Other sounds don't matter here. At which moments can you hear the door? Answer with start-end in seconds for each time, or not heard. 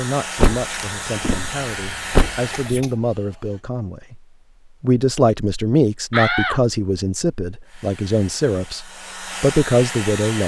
0.4-2.9, 6.1-6.6.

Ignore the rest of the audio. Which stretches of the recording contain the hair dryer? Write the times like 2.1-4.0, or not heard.
0.0-2.8, 7.7-10.4.